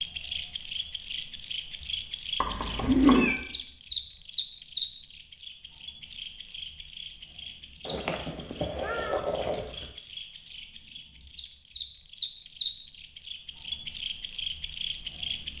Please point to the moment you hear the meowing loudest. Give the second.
3 s.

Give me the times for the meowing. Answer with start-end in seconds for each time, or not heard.
2.4-3.4, 7.8-9.9.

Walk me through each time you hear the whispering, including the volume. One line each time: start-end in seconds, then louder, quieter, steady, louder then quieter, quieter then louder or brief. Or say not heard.
not heard.